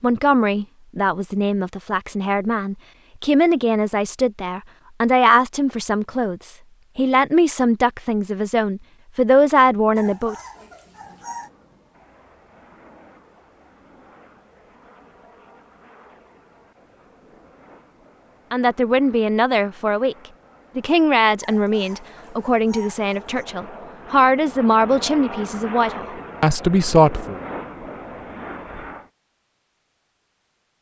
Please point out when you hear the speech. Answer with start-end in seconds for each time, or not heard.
0.0-10.3, 18.5-20.1, 20.8-27.4.